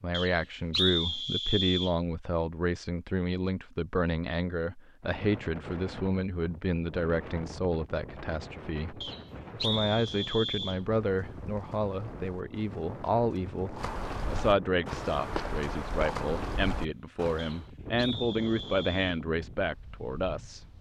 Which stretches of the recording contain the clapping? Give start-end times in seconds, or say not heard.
not heard.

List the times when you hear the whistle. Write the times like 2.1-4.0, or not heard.
0.1-1.9, 9.0-10.8, 17.4-19.2.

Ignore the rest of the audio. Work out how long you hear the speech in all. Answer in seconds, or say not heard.
21 s.